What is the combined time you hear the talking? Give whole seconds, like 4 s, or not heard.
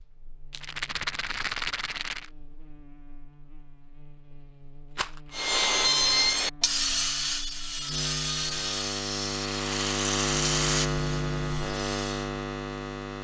not heard.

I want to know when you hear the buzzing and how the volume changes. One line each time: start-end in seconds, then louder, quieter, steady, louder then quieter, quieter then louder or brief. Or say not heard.
0.0-13.1 louder.